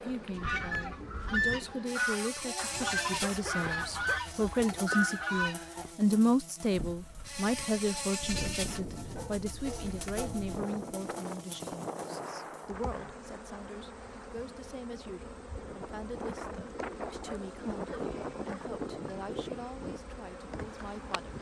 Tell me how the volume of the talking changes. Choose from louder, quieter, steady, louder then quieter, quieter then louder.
louder then quieter.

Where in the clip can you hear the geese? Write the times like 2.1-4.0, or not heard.
0.3-5.9.